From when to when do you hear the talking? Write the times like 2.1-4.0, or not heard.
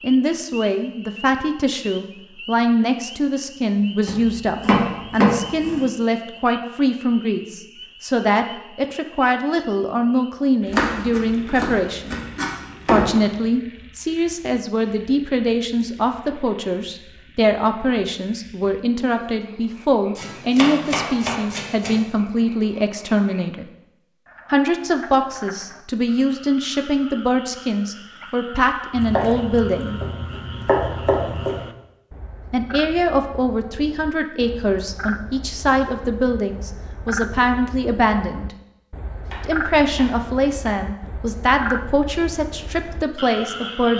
0.0-12.2, 12.9-23.6, 24.5-30.0, 32.5-38.5, 39.5-43.9.